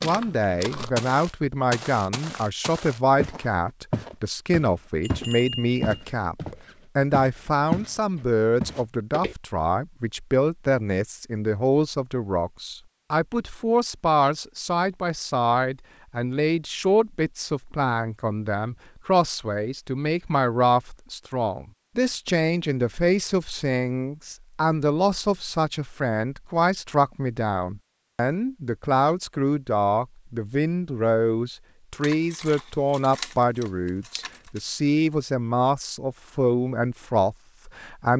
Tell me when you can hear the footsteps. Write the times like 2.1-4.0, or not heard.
0.0-7.9, 8.6-9.3.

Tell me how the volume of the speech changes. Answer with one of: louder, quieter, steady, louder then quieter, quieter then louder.
steady.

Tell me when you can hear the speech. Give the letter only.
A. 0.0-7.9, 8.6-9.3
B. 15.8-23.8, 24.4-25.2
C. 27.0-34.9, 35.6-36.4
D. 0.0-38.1
D.